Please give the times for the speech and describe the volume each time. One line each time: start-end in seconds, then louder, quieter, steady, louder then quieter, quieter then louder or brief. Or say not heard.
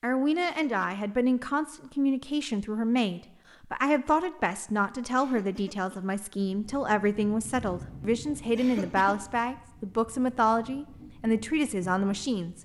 0.0-12.5 steady.